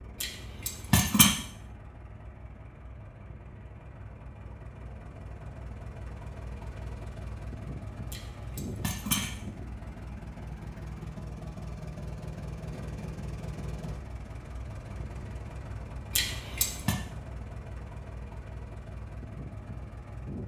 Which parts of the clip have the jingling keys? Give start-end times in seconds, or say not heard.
0.2-1.3, 8.1-9.3, 16.1-16.9.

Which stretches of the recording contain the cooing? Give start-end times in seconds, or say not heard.
not heard.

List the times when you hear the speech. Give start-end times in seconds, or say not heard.
not heard.